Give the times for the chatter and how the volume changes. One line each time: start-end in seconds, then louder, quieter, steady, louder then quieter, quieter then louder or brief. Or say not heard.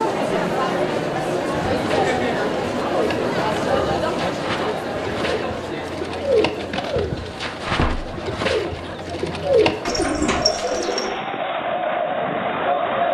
0.0-13.0 quieter then louder.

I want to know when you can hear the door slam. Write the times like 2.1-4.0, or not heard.
7.7-8.1.